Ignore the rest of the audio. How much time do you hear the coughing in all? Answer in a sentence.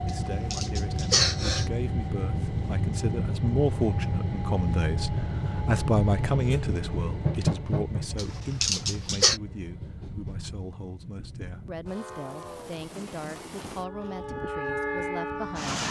The coughing can be heard for 3 seconds in total.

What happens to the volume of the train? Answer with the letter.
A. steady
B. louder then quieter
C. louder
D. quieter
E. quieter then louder
E.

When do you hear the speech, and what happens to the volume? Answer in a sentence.
The speech can be heard from 0.0 to 15.8 s, getting louder then quieter.